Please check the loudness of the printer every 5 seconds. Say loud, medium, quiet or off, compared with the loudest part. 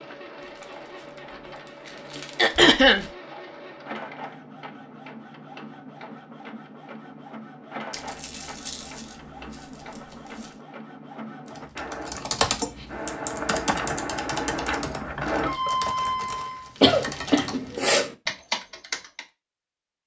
quiet, quiet, medium, loud.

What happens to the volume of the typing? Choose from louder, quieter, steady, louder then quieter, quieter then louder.
quieter then louder.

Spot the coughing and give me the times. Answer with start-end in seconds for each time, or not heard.
2.4-3.0, 16.8-18.1.